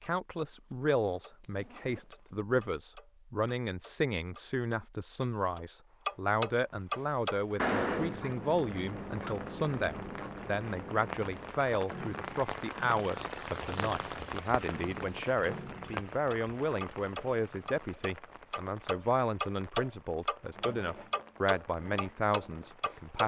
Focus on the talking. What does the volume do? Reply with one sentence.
The loudness of the talking stays about the same.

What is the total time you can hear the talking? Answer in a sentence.
The talking can be heard for 23 seconds in total.